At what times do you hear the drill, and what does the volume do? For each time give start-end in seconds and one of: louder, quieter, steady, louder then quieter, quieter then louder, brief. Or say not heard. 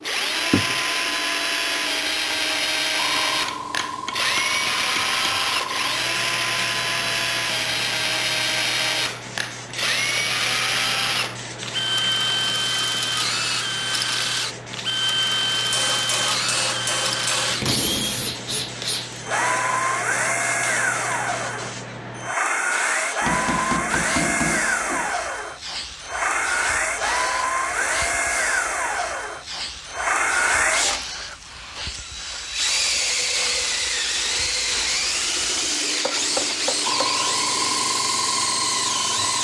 0.0-39.3 steady.